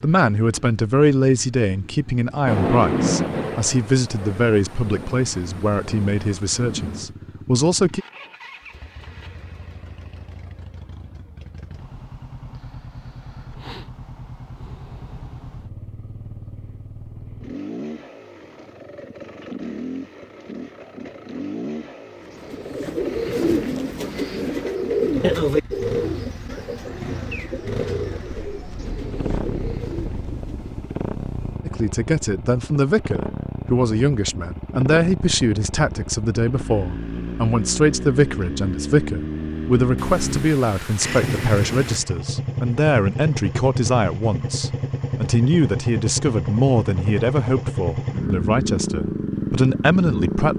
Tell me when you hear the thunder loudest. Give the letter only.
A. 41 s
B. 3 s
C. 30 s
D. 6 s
B.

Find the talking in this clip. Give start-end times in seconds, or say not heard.
0.0-8.0, 31.6-50.5.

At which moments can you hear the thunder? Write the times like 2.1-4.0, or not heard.
2.5-7.1, 28.2-31.6, 40.0-42.0.